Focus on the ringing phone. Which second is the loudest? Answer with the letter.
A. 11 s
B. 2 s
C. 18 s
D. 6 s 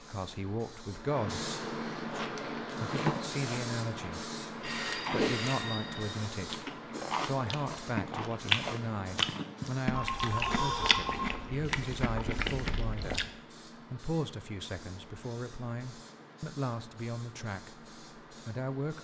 A.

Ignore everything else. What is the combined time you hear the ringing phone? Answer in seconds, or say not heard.
3 s.